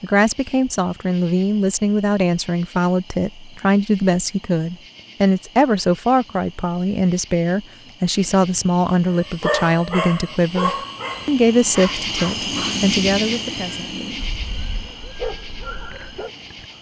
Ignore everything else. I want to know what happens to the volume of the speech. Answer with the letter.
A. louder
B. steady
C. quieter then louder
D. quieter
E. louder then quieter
B.